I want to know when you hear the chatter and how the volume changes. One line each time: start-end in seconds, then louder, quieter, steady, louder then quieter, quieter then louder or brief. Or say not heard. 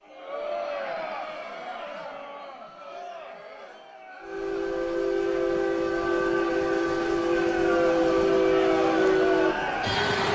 0.0-10.3 quieter then louder.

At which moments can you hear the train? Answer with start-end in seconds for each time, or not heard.
4.2-10.3.